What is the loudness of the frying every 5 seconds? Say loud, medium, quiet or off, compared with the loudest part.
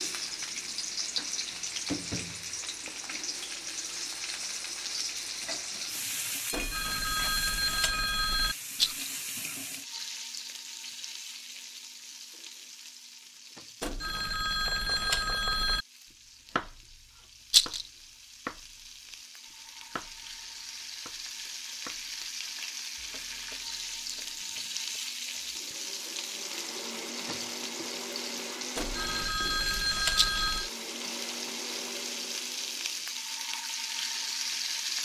loud, loud, medium, quiet, loud, loud, loud.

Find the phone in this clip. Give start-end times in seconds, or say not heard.
6.5-8.6, 13.8-15.8, 28.8-30.7.